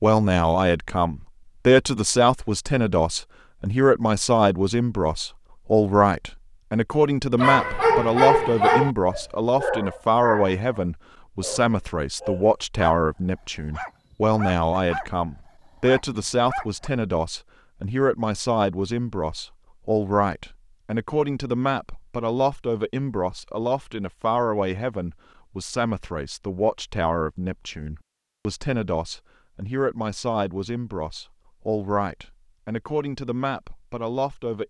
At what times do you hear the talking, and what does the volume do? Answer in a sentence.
You can hear the talking from 0.0 to 34.6 s, getting quieter.